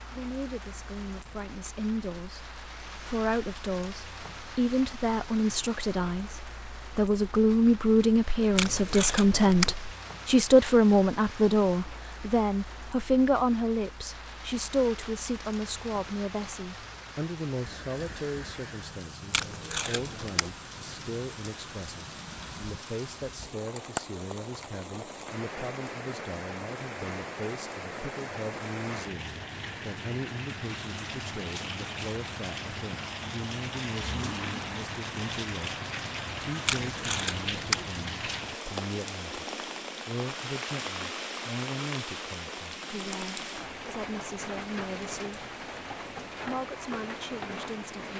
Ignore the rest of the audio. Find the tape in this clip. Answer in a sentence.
You can hear the tape from 8.6 to 9.8 s, from 19.3 to 20.5 s and from 36.6 to 37.9 s.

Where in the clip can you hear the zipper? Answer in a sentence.
You can hear the zipper from 34.0 to 34.6 s.